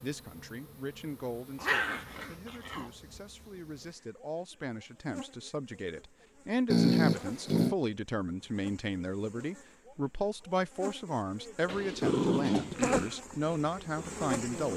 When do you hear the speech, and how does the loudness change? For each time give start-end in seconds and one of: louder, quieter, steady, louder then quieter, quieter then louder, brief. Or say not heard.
0.0-14.7 louder.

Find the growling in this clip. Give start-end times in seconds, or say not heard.
1.6-2.9, 6.7-7.8, 11.7-13.2.